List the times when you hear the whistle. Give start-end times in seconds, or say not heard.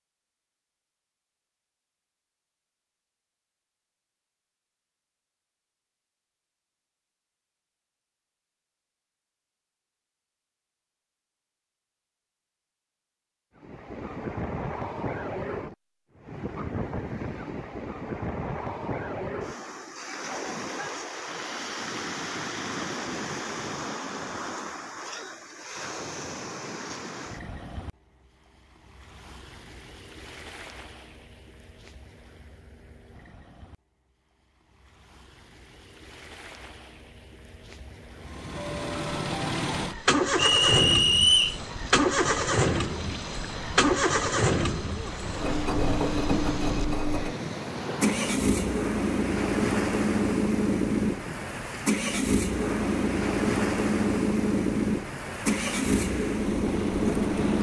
40.4-41.6.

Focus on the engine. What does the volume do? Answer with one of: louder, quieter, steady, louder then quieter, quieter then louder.
steady.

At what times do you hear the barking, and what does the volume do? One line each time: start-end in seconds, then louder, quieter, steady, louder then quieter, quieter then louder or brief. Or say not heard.
not heard.